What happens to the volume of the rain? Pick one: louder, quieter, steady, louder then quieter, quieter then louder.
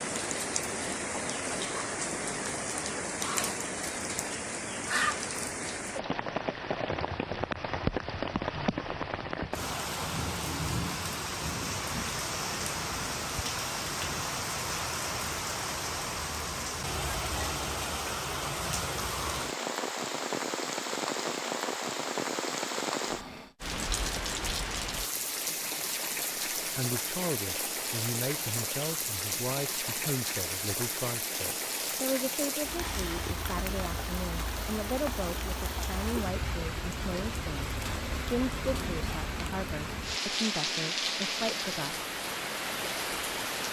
steady.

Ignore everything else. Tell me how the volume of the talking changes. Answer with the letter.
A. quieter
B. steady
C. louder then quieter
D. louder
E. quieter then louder
B.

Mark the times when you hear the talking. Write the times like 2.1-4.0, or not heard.
26.6-42.0.